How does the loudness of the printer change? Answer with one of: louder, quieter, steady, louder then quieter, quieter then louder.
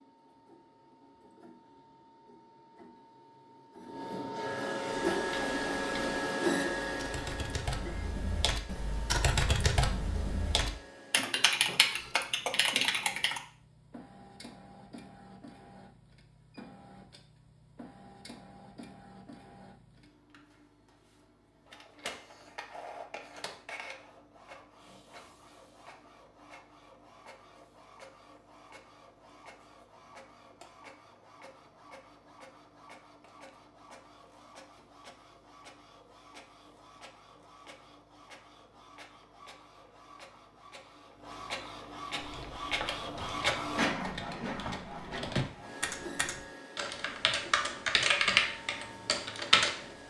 quieter then louder.